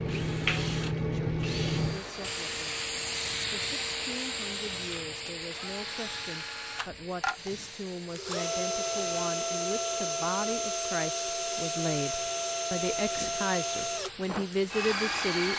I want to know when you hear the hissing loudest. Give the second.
1 s.